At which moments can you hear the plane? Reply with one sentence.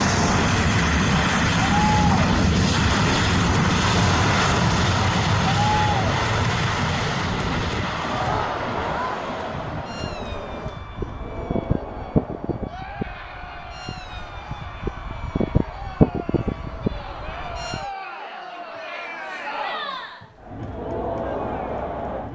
The plane can be heard from 0.0 to 17.9 s.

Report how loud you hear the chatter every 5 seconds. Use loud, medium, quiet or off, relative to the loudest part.
loud, loud, medium, medium, loud.